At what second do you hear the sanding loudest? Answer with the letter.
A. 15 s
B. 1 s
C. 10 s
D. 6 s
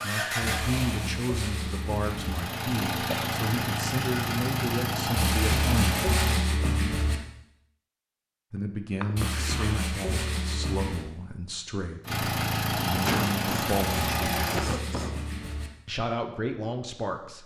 D.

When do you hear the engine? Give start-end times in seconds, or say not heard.
0.0-6.4, 12.1-14.6.